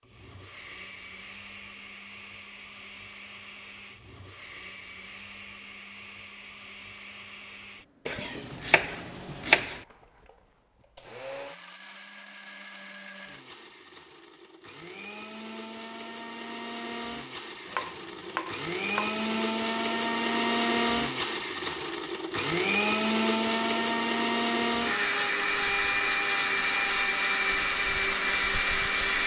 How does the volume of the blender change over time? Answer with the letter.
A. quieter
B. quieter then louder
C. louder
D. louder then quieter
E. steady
C.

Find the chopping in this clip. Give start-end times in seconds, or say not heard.
8.1-9.8, 17.6-19.2.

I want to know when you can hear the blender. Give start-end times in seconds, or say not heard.
0.0-29.2.